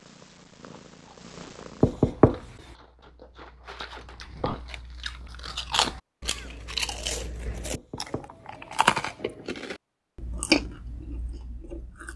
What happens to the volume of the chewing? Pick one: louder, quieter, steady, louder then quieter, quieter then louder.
louder.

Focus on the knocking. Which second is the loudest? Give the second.
2 s.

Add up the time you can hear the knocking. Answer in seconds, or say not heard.
2 s.